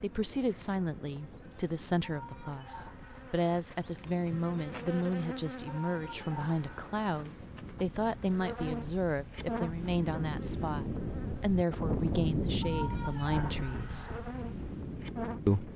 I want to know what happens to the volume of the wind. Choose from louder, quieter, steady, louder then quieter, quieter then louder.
louder.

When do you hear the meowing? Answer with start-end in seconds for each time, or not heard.
2.0-3.4, 5.7-7.2, 12.6-14.2.